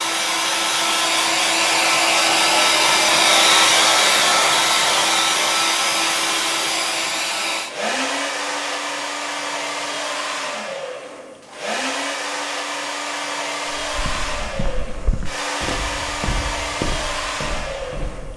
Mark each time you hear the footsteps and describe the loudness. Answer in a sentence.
You can hear the footsteps from 13.8 to 18.3 s, getting louder then quieter.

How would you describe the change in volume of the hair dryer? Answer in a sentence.
The loudness of the hair dryer goes down.